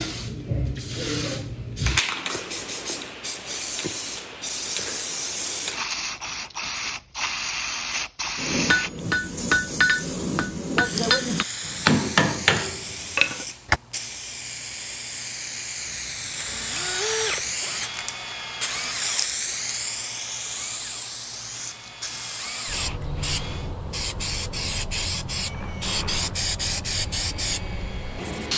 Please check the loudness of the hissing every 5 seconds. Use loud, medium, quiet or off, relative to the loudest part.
loud, loud, medium, loud, loud, loud.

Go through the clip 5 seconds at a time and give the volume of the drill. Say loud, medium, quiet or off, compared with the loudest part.
off, off, off, loud, medium, medium.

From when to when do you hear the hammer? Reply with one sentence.
You can hear the hammer from 8.3 to 13.8 s.